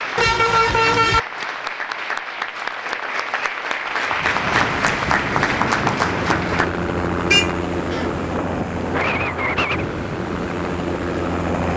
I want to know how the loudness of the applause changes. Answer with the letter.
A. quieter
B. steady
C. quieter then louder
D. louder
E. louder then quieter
D.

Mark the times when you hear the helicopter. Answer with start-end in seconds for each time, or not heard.
4.7-11.7.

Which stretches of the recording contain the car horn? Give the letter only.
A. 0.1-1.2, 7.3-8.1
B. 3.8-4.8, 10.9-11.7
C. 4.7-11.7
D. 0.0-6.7
A.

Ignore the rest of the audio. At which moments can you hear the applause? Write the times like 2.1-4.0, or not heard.
0.0-6.7.